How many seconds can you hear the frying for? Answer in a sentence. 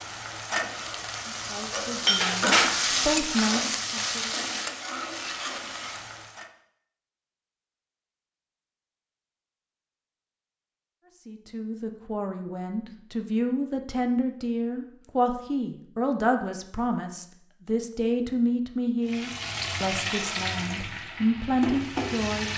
The frying can be heard for 10 seconds in total.